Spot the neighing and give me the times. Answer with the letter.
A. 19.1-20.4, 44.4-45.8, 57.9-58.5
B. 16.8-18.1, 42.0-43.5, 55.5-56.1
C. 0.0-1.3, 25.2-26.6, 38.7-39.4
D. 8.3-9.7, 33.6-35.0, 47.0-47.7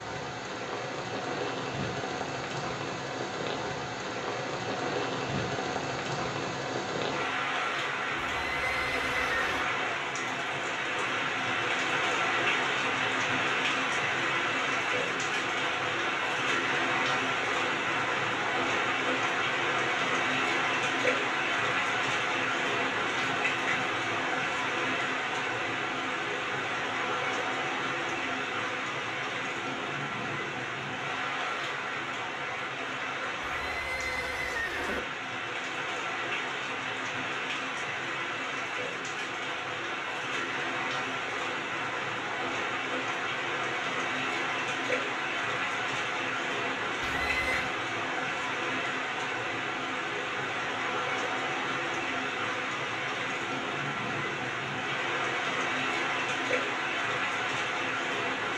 D.